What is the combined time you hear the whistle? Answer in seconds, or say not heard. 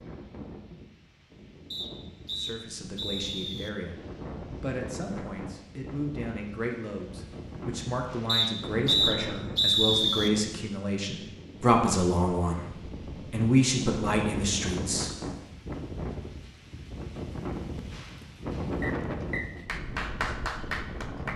5 s.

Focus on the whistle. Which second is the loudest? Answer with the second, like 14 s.
10 s.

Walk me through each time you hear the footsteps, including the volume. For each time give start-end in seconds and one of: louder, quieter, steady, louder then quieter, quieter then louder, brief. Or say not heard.
not heard.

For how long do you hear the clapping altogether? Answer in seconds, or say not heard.
2 s.